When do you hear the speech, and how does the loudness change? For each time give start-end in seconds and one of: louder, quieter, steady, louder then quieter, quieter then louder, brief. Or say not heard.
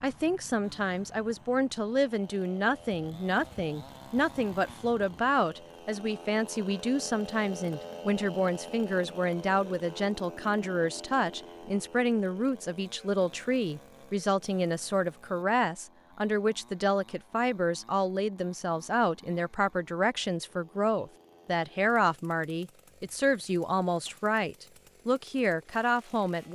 0.0-26.4 steady.